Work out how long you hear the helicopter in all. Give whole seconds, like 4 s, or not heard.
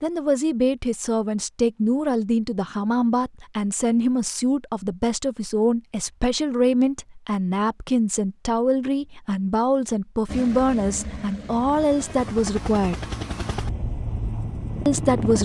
5 s.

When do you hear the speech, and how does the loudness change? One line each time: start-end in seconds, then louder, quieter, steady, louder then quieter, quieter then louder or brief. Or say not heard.
0.0-13.1 steady
14.8-15.4 brief.